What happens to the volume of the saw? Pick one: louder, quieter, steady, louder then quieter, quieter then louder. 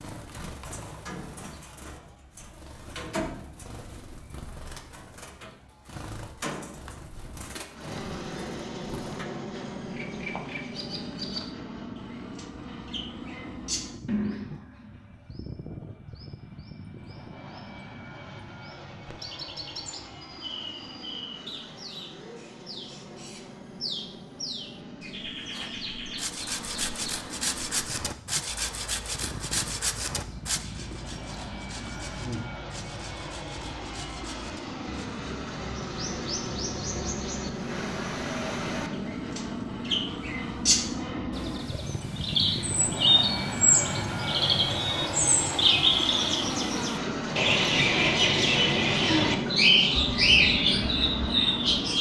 quieter.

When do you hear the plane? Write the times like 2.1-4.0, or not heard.
7.7-51.9.